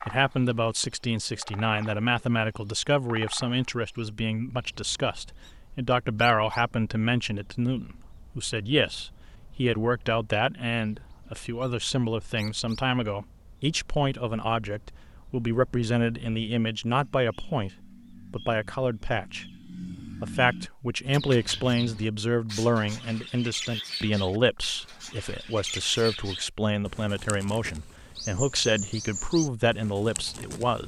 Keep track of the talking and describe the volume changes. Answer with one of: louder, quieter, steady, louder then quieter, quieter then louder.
steady.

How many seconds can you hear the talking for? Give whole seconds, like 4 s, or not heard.
30 s.